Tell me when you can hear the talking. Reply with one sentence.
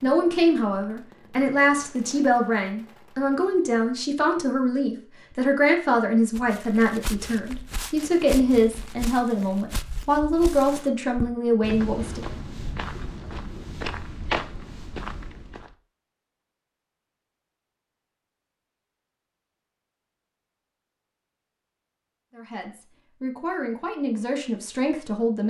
The talking can be heard from 0.0 to 12.2 s and from 22.3 to 25.4 s.